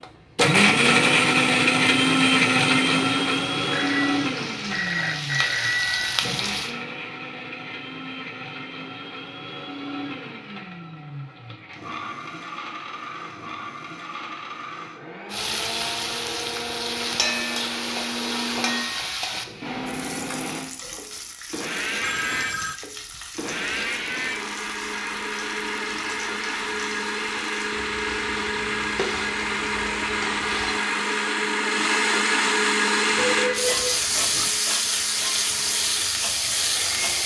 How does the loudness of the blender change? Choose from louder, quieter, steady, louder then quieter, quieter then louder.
quieter then louder.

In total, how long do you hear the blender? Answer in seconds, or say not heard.
37 s.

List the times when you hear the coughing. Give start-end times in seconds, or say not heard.
not heard.